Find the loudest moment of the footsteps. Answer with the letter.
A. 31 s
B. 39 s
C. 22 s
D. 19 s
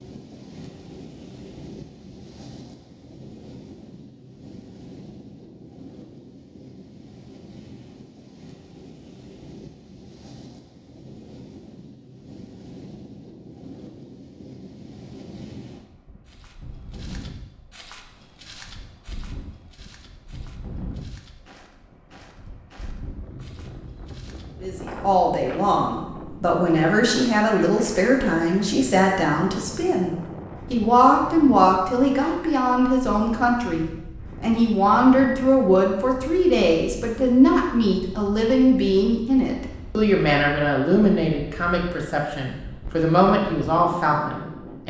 D.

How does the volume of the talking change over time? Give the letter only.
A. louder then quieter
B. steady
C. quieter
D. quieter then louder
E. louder
B.